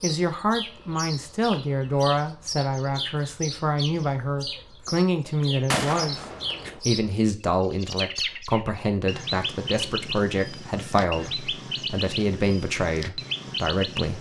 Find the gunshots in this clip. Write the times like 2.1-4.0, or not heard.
5.7-6.8.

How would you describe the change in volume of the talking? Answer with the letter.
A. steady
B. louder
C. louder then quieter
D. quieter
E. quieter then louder
A.